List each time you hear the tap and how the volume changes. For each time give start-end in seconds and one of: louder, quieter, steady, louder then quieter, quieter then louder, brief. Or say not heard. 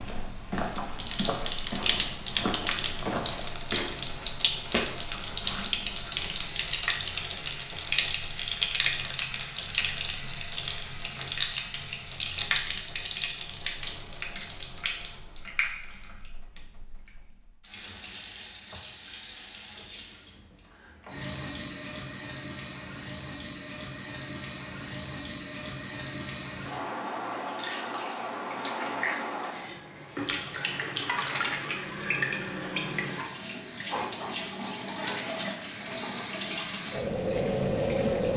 0.1-38.3 quieter then louder.